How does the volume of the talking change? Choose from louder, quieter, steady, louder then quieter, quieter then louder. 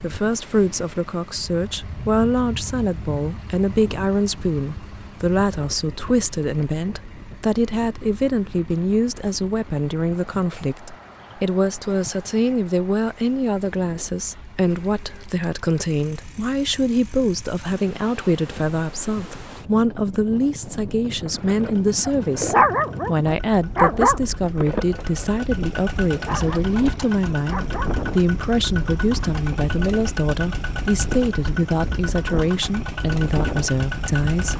steady.